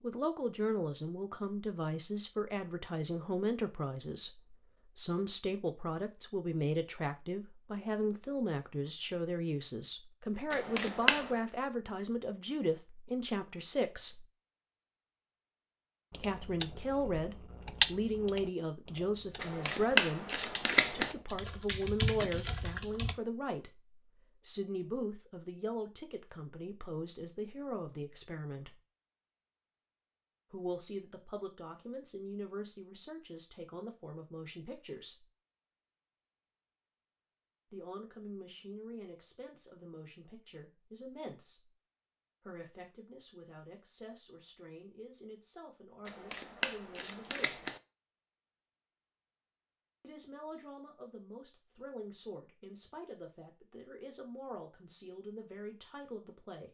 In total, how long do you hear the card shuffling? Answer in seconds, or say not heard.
4 s.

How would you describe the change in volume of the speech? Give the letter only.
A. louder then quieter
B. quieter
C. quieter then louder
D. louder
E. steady
B.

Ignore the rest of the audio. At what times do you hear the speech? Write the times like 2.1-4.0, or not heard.
0.0-14.2, 16.1-28.8, 30.5-35.3, 37.7-41.8, 42.4-47.6, 50.0-56.6.